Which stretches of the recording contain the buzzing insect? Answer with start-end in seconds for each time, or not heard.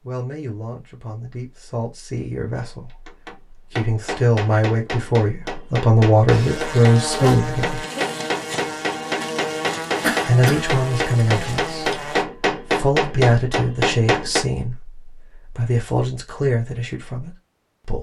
6.3-12.2.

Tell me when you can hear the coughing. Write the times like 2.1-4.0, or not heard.
10.0-10.7.